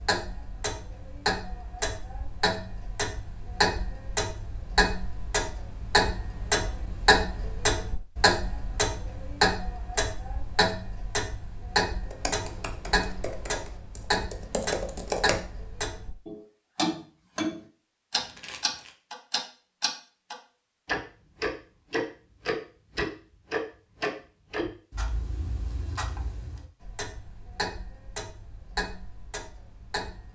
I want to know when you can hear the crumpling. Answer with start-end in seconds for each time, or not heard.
18.1-18.9.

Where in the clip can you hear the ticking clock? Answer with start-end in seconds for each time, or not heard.
0.0-30.3.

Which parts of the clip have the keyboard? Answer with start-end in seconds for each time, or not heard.
12.1-15.4.